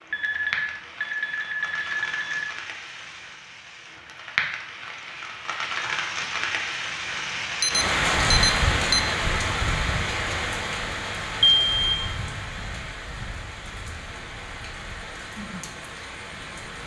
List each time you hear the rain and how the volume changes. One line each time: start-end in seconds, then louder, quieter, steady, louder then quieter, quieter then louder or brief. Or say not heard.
0.0-16.8 louder then quieter.